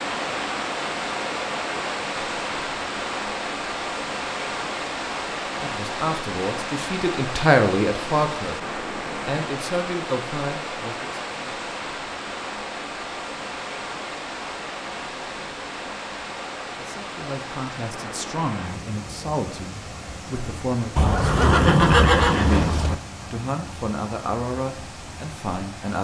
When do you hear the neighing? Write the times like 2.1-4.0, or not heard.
20.9-22.9.